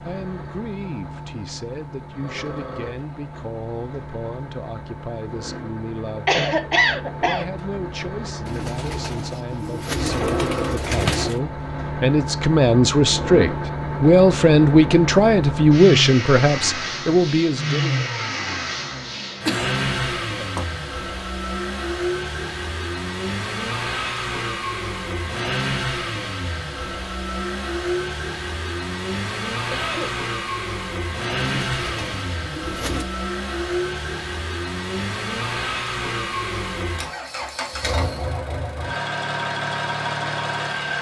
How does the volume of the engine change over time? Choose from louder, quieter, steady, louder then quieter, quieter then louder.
louder.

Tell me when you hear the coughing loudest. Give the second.
7 s.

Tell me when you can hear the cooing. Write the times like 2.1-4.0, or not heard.
8.4-11.4, 31.5-33.0.